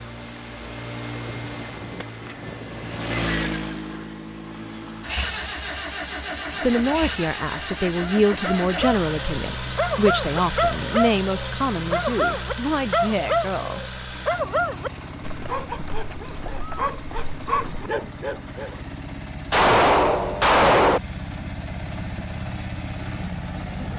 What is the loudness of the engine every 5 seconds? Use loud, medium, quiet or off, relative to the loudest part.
loud, loud, loud, medium, loud.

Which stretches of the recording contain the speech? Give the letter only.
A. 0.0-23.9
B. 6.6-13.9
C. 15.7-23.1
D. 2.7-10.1
B.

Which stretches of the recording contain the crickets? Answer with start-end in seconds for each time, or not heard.
not heard.